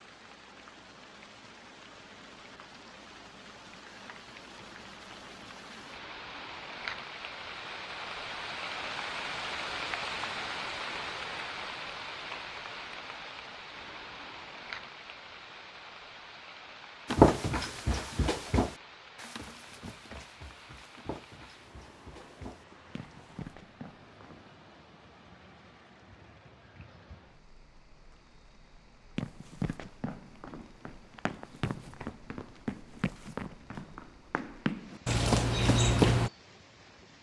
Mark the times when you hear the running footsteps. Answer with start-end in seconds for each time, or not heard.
17.1-24.5, 29.1-36.3.